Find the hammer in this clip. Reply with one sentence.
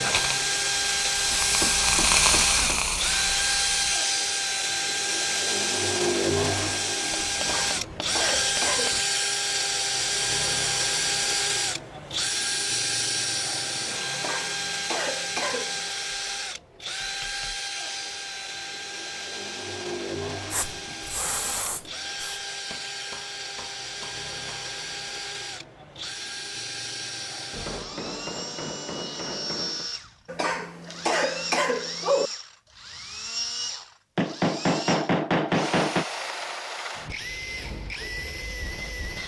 The hammer can be heard from 1.3 to 2.8 s, from 7.1 to 9.1 s, from 17.0 to 17.6 s, from 22.7 to 24.6 s, from 27.5 to 29.9 s and from 34.1 to 36.0 s.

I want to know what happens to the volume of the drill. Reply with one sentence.
The volume of the drill goes down.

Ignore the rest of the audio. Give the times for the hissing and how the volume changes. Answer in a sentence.
The hissing can be heard from 0.0 to 4.0 s, getting louder then quieter; and briefly from 20.5 to 22.4 s.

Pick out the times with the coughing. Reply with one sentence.
You can hear the coughing from 7.3 to 9.2 s, from 14.1 to 15.9 s and from 30.2 to 32.3 s.